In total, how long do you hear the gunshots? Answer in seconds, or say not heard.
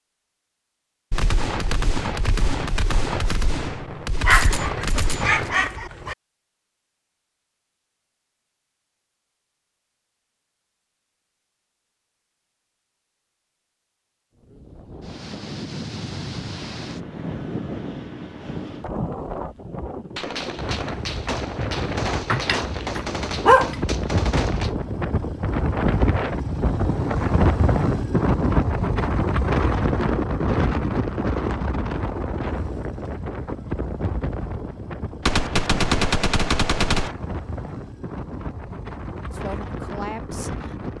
11 s.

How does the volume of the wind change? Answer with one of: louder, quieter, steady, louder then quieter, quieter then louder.
louder then quieter.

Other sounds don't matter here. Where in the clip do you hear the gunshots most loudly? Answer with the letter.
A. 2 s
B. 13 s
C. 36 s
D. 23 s
C.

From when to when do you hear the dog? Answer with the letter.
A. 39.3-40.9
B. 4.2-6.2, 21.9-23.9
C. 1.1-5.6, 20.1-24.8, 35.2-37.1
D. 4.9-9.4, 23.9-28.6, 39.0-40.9
B.